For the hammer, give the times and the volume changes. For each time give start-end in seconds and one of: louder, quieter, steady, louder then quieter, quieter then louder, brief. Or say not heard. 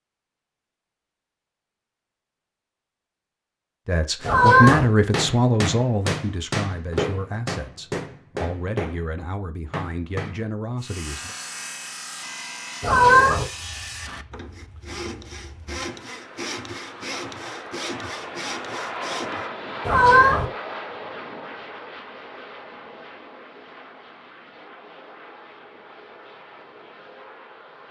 4.2-10.4 quieter.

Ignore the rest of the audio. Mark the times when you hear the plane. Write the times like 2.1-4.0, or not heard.
13.4-27.8.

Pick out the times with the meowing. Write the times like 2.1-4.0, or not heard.
4.2-4.8, 12.8-13.4, 19.9-20.4.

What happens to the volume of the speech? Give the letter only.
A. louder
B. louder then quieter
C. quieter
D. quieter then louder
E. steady
C.